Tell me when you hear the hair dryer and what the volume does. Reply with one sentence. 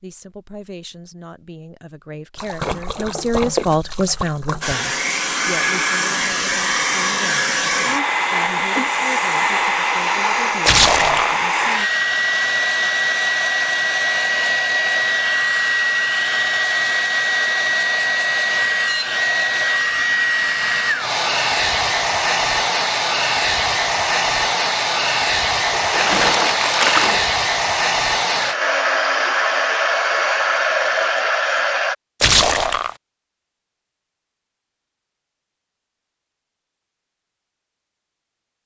The hair dryer can be heard from 4.6 to 31.9 s, at a steady volume.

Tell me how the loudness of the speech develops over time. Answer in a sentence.
The volume of the speech goes up, then down.